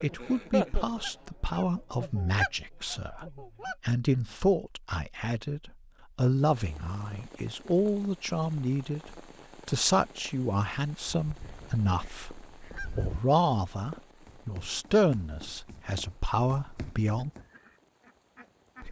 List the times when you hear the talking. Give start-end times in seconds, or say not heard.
0.0-17.3.